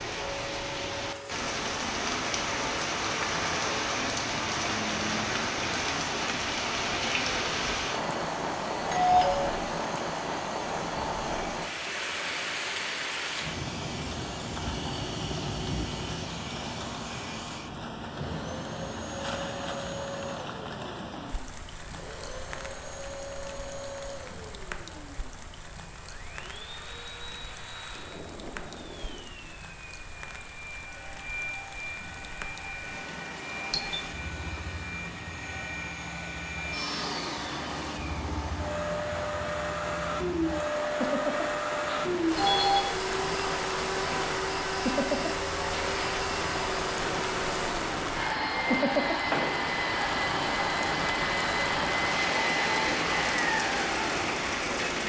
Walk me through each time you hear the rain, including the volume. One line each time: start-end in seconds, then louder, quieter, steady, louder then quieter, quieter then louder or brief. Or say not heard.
0.0-55.0 quieter then louder.